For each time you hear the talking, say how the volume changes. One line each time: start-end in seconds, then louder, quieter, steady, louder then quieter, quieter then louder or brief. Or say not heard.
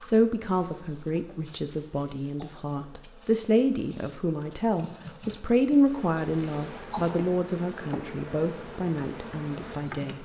0.0-10.2 louder then quieter.